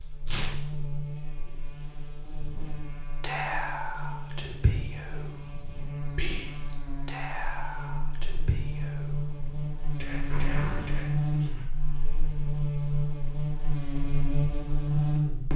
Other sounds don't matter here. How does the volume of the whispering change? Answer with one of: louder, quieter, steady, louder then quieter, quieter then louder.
quieter.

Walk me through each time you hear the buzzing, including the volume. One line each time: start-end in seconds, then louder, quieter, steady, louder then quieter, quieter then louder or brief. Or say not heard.
0.0-15.5 louder.